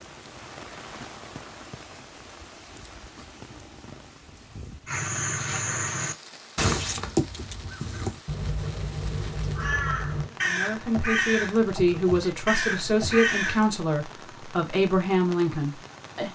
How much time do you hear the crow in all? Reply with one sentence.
The crow can be heard for 9 seconds in total.